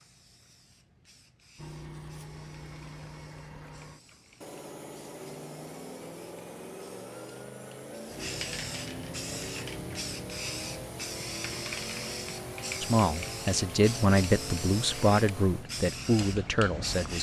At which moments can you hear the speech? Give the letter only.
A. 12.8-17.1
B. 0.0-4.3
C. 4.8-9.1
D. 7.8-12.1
A.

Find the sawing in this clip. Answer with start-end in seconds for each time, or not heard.
not heard.